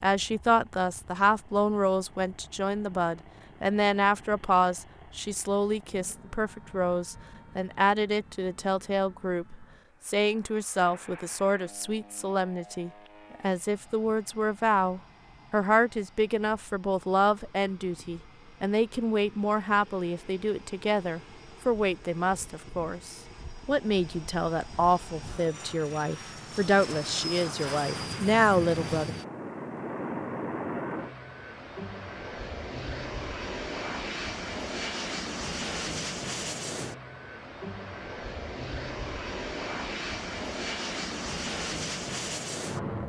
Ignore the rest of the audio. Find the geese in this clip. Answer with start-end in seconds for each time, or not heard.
not heard.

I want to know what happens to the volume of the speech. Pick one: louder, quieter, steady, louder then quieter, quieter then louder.
steady.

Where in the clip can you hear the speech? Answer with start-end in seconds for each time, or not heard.
0.0-29.1.